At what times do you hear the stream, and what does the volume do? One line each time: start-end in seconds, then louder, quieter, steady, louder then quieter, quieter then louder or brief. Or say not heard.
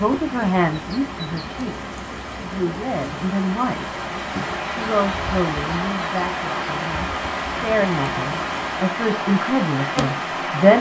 0.0-10.7 louder.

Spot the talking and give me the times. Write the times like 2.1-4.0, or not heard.
0.0-4.0, 4.7-10.7.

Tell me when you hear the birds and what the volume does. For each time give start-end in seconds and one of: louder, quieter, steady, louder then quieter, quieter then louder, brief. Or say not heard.
not heard.